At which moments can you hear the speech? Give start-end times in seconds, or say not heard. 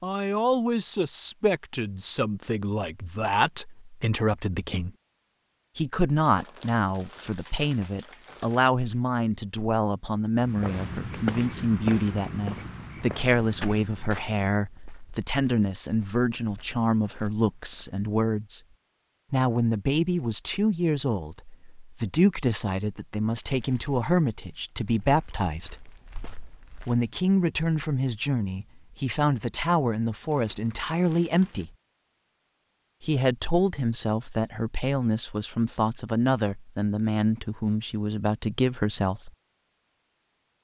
0.0-4.9, 5.8-18.6, 19.3-25.8, 26.9-31.7, 33.0-39.3.